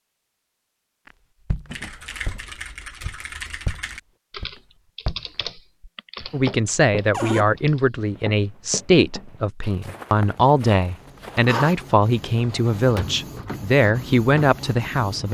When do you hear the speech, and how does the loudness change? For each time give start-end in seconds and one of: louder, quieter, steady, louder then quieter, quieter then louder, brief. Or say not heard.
6.3-15.2 steady.